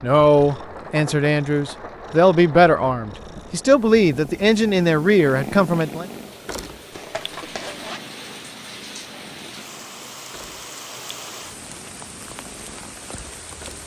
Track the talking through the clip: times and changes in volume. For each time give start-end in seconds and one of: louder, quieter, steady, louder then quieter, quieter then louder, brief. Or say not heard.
0.0-6.0 steady.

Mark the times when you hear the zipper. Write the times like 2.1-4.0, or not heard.
6.9-8.0.